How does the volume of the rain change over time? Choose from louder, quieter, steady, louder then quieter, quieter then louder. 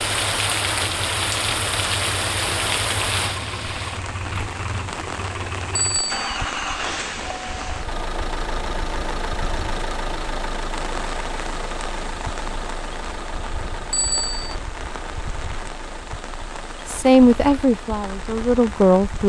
quieter.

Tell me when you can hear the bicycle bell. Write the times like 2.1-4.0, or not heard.
5.8-6.3, 13.9-14.6.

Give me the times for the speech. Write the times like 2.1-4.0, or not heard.
16.9-19.2.